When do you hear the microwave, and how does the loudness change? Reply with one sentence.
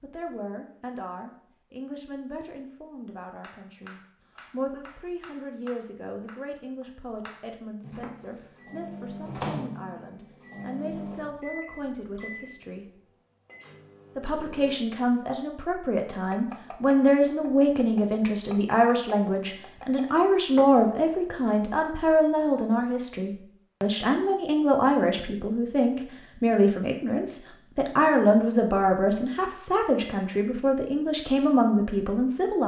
You can hear the microwave from 7.8 to 14.8 s, getting quieter.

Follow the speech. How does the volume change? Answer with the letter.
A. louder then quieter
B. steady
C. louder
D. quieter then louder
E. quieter
C.